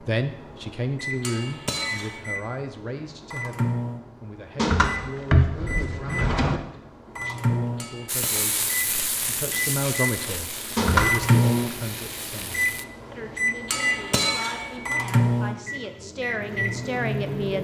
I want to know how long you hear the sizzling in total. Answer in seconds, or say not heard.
5 s.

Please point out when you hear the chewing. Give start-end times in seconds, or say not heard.
not heard.